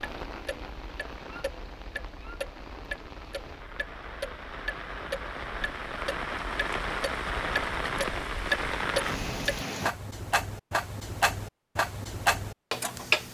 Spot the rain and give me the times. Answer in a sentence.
You can hear the rain from 0.0 to 9.9 s.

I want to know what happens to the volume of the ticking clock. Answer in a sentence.
The volume of the ticking clock goes up.